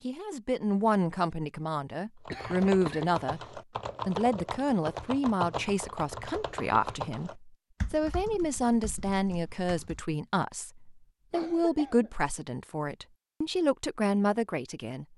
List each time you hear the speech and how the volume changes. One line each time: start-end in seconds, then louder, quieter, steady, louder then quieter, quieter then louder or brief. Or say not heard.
0.1-15.1 steady.